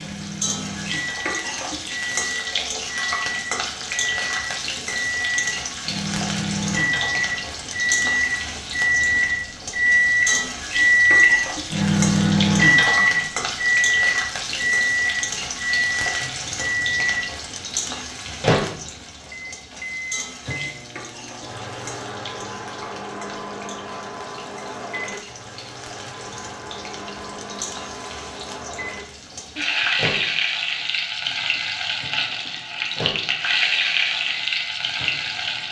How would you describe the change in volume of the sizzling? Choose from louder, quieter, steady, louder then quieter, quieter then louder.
quieter then louder.